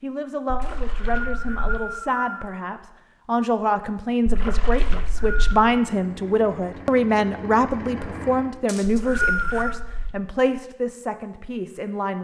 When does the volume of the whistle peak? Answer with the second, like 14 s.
9 s.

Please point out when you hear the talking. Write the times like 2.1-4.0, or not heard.
0.0-12.1.